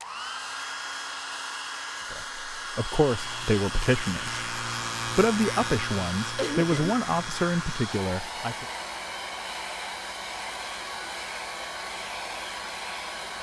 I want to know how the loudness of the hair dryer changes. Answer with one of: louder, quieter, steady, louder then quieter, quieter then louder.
steady.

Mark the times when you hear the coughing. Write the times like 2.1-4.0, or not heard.
6.3-7.0.